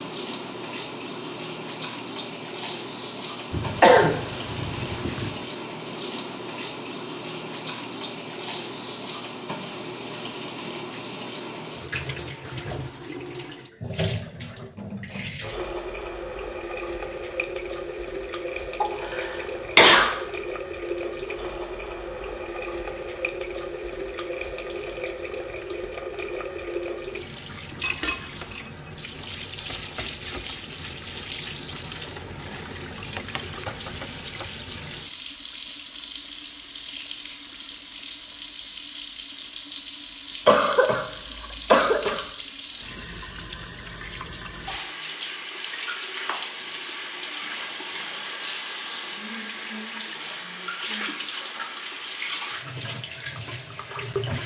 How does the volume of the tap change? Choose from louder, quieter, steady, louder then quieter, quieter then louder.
steady.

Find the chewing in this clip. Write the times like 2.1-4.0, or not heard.
not heard.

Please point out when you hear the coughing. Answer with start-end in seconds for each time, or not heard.
3.5-5.3, 18.8-20.1, 40.5-41.0, 41.7-42.2.